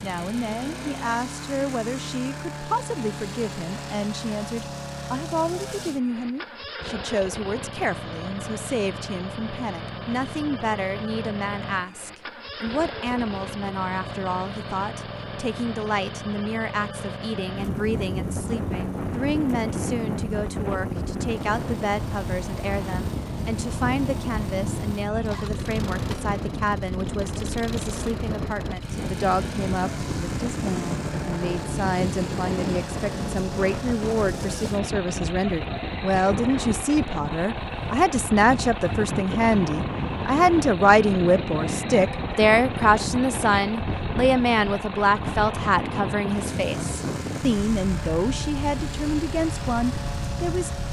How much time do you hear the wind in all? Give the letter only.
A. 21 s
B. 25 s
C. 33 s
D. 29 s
C.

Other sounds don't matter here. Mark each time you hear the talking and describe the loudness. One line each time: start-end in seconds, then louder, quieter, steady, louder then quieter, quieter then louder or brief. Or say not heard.
0.0-50.7 louder.